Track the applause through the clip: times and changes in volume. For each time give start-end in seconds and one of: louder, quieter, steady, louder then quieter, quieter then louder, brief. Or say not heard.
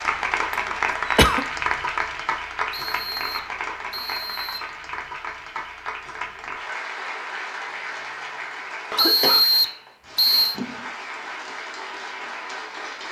0.0-13.0 quieter.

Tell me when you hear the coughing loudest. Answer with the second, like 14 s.
1 s.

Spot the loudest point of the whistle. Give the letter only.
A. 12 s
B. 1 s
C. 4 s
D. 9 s
D.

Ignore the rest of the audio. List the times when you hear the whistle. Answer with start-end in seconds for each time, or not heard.
2.7-4.7, 8.9-10.6.